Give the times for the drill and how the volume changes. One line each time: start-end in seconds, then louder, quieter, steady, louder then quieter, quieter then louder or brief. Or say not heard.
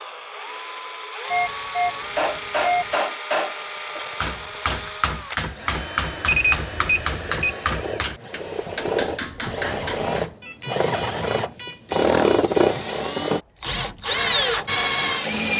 0.0-15.5 louder.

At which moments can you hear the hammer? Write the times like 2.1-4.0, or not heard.
1.9-10.3.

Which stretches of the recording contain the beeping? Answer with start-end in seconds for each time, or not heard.
1.3-2.9, 6.2-7.5, 10.4-12.8.